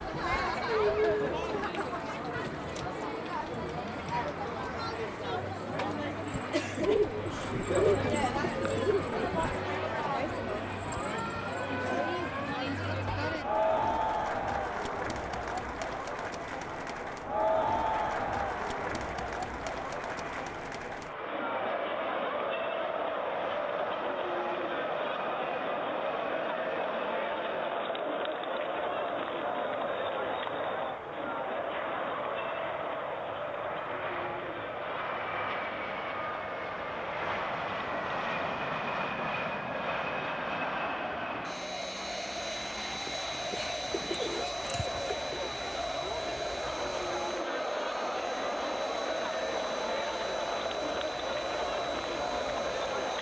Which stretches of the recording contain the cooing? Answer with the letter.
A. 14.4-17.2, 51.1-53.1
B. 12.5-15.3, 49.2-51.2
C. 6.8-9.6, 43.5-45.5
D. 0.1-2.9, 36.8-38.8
C.